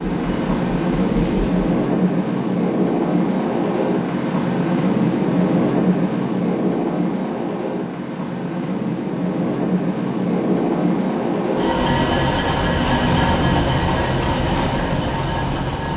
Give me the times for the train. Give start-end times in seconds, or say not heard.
0.0-15.9.